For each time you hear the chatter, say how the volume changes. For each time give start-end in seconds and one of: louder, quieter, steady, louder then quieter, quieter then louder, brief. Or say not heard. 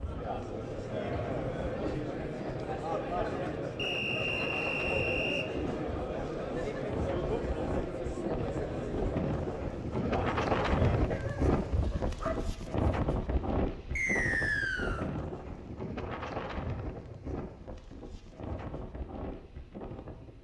0.0-11.2 steady.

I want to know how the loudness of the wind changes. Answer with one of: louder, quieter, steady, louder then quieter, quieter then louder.
louder then quieter.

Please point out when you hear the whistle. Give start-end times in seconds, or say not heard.
3.8-5.5, 13.9-15.1.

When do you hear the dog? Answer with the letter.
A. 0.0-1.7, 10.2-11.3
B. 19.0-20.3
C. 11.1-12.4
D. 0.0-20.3
C.